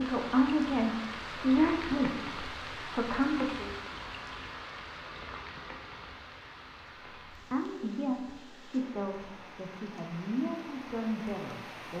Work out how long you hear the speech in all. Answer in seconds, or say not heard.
8 s.